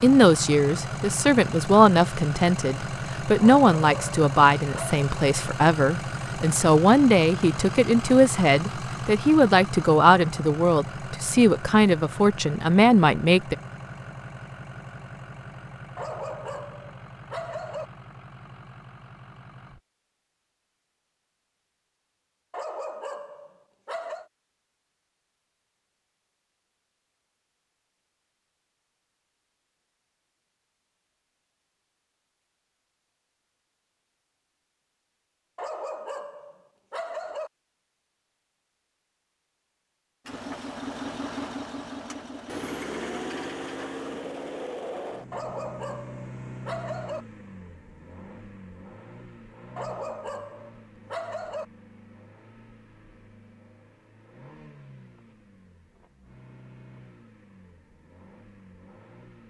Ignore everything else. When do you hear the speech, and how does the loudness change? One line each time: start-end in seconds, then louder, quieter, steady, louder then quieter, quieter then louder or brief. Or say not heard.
0.0-13.6 steady.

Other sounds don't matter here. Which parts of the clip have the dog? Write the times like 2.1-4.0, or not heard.
3.4-5.0, 15.9-17.9, 22.5-24.2, 35.5-37.5, 45.3-47.2, 49.8-51.6.